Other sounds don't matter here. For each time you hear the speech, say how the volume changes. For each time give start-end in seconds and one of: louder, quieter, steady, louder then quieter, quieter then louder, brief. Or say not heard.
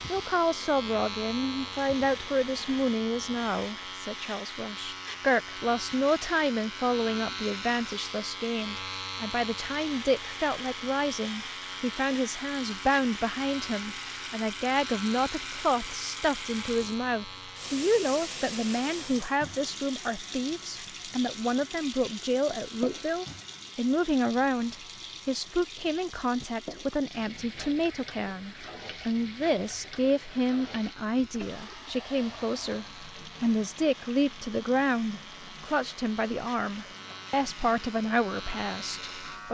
0.1-39.4 steady.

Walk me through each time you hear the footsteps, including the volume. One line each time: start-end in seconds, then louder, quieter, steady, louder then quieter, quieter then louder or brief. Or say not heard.
not heard.